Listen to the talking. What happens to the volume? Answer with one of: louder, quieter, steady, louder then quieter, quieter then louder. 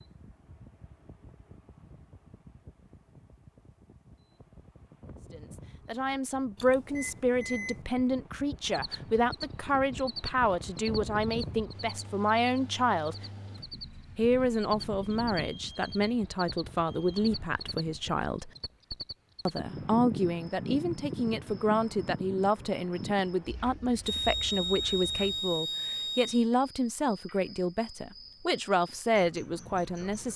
steady.